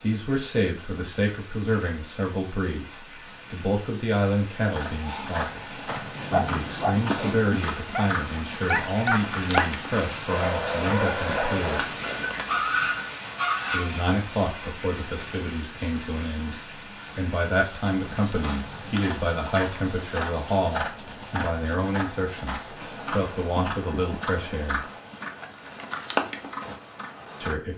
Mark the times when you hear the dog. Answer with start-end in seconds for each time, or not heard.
5.0-14.1.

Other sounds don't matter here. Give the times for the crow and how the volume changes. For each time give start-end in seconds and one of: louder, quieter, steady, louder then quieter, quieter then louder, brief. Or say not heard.
not heard.